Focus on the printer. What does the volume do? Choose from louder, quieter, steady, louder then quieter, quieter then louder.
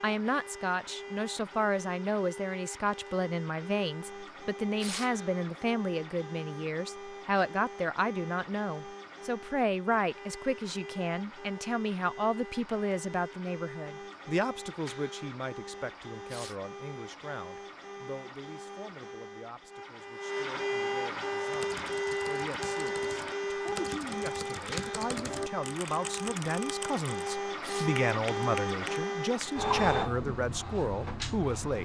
louder.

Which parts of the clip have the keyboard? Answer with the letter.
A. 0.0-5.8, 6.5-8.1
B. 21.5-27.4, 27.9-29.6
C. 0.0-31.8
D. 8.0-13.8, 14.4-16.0
B.